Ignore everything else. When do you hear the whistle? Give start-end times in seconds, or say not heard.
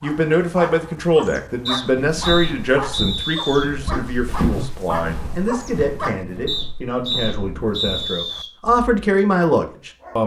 1.6-3.6, 6.5-8.5.